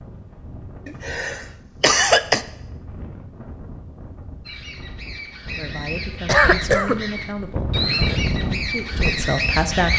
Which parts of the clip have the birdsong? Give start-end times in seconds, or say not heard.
4.5-9.9.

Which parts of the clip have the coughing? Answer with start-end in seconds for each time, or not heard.
0.8-2.5, 6.2-7.0.